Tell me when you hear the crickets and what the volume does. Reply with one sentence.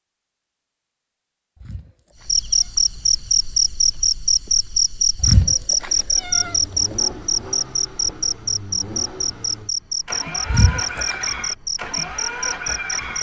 The crickets can be heard from 2.2 to 13.1 s, getting quieter.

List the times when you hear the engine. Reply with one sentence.
The engine can be heard from 6.2 to 13.1 s.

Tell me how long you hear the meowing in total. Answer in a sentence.
The meowing can be heard for 4 seconds in total.